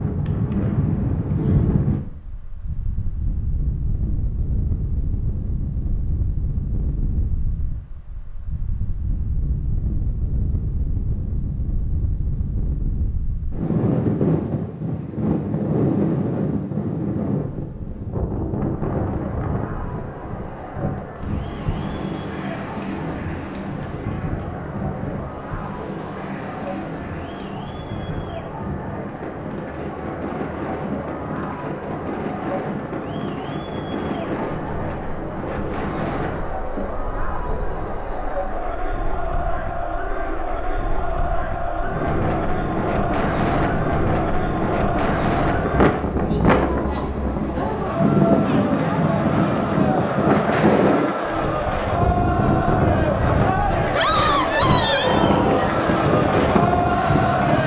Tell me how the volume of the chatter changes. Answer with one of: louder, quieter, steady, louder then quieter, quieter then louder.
louder.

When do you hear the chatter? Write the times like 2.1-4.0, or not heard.
18.8-57.6.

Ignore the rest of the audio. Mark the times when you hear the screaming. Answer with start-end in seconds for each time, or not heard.
53.9-55.3.